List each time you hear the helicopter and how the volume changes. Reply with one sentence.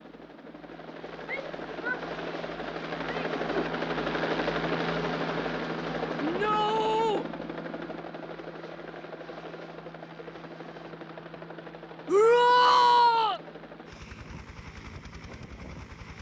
The helicopter can be heard from 0.0 to 16.1 s, getting louder then quieter.